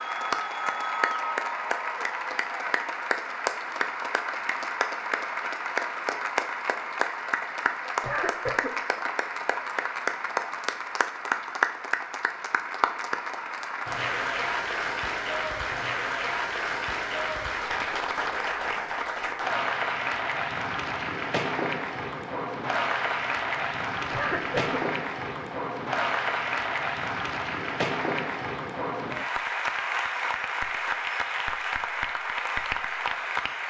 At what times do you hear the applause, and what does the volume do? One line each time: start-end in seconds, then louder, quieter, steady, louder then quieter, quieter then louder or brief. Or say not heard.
0.0-33.6 steady.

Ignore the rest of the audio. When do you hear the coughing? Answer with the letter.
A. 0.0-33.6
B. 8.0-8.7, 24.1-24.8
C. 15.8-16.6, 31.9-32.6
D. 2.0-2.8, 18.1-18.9
B.